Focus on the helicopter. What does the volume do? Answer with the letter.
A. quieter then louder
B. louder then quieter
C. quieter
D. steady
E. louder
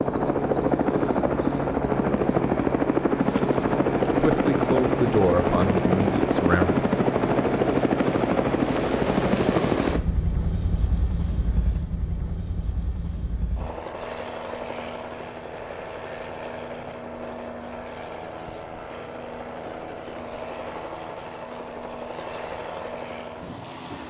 C.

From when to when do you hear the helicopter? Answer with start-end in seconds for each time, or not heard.
0.0-24.0.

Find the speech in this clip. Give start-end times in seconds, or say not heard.
4.2-6.8.